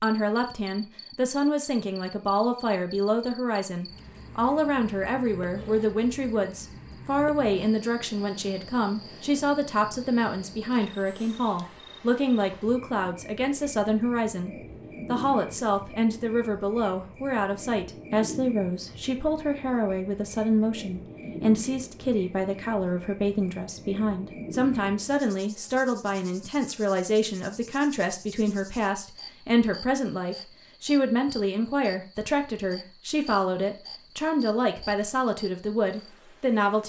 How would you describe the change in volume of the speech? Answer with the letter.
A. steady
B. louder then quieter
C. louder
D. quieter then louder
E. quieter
A.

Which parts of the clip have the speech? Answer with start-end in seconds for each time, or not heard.
0.0-36.8.